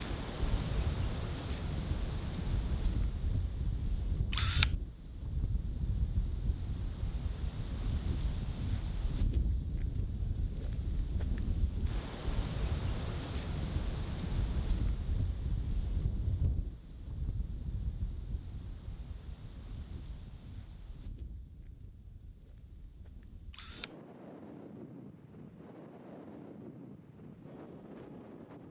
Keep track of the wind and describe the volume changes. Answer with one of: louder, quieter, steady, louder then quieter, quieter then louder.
quieter.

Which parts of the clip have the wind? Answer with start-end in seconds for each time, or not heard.
0.0-28.6.